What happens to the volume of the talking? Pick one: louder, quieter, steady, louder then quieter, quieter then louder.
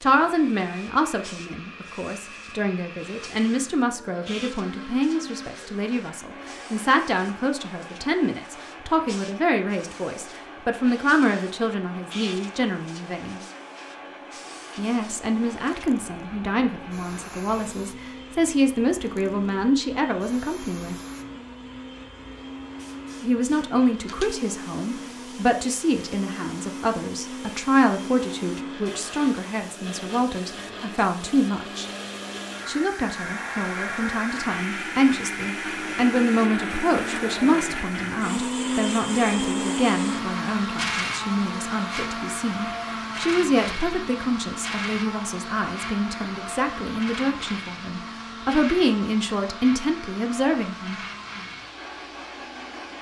steady.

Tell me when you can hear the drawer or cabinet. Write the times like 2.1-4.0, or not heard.
not heard.